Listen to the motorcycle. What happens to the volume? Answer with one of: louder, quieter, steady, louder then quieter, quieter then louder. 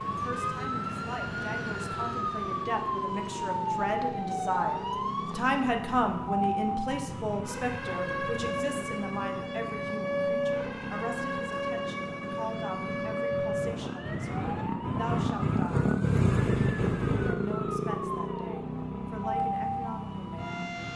louder.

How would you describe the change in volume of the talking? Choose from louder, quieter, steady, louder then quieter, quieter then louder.
louder then quieter.